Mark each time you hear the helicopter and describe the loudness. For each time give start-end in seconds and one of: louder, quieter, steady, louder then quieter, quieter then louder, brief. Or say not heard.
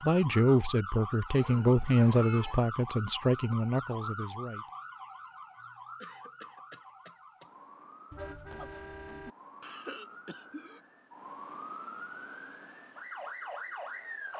not heard.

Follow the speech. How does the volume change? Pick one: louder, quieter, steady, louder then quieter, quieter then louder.
quieter.